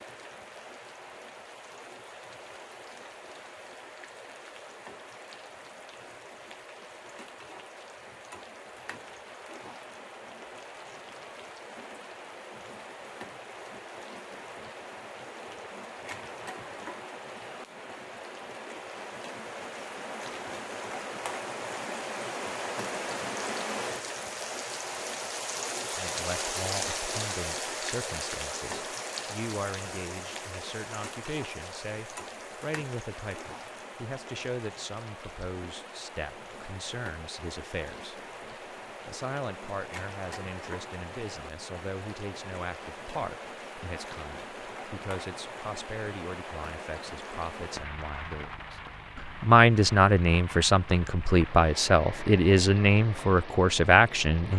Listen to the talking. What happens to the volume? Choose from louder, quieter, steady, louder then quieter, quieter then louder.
louder.